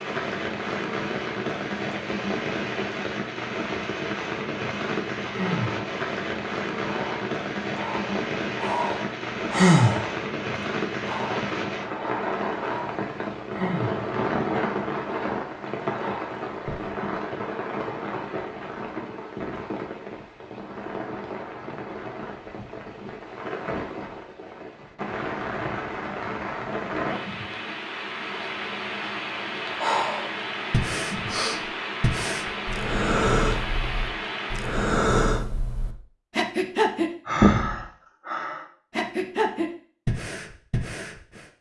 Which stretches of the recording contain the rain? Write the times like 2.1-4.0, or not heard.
0.0-35.0.